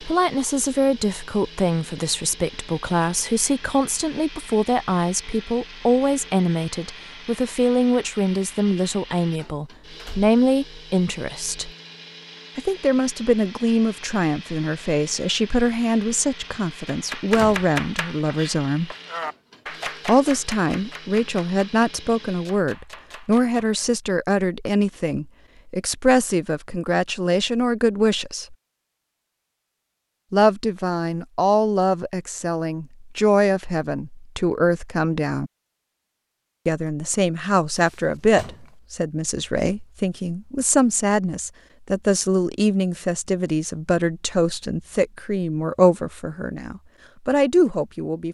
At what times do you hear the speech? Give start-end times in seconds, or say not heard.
0.0-11.7, 12.6-18.9, 20.1-28.6, 30.3-35.5, 36.6-48.2.